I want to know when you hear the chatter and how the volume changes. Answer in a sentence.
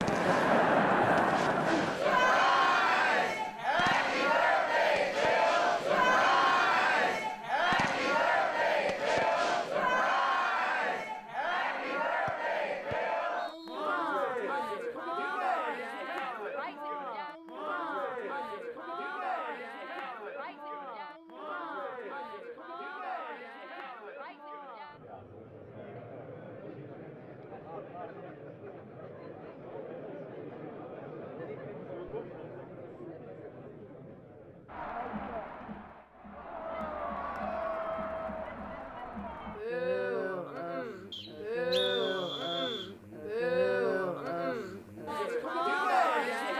The chatter can be heard from 0.0 to 46.5 s, getting quieter then louder.